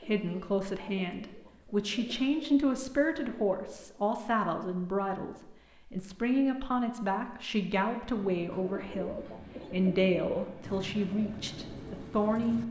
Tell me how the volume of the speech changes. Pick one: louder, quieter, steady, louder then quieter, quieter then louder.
steady.